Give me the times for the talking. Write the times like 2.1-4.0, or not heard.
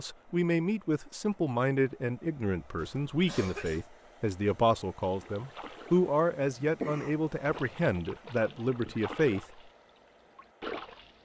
0.0-9.4.